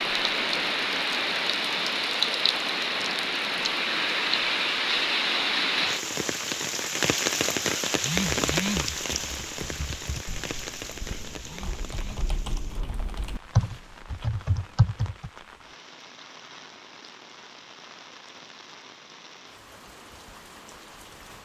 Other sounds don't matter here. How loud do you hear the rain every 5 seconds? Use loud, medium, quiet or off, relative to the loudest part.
loud, loud, quiet, quiet, quiet.